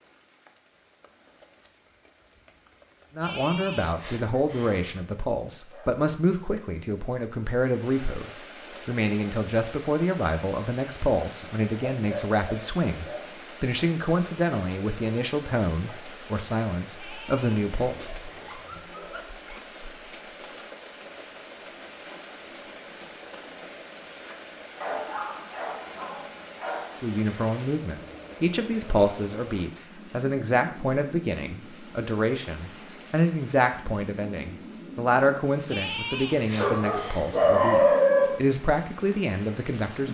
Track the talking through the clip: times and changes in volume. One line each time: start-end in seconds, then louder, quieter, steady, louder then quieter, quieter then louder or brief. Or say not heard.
3.1-18.1 steady
27.0-40.1 steady.